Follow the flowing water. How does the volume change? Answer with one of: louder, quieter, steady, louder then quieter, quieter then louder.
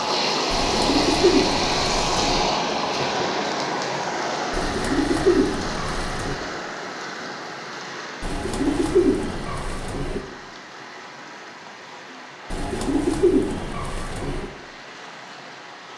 quieter.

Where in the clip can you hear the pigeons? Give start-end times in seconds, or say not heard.
0.5-2.5, 4.5-6.3, 8.2-10.2, 12.5-14.5.